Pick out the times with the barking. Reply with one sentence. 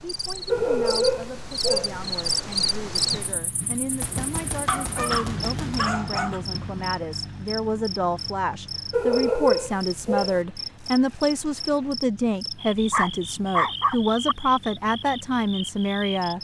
The barking can be heard from 0.5 to 2.0 s, from 4.7 to 6.4 s, from 8.9 to 10.4 s and from 12.8 to 14.3 s.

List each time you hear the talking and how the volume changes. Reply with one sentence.
You can hear the talking from 0.0 to 16.4 s, getting louder.